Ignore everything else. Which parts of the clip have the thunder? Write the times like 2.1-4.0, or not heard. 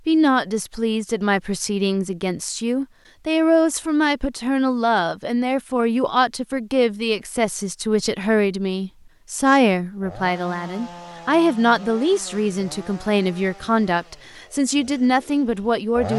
not heard.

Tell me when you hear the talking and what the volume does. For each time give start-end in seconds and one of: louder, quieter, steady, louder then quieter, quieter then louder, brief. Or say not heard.
0.1-16.1 steady.